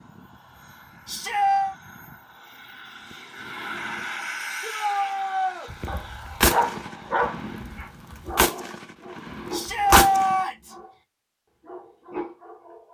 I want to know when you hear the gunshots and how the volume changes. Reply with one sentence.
You can hear the gunshots from 5.7 to 10.3 s, getting quieter then louder.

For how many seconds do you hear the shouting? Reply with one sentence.
The shouting can be heard for 3 seconds in total.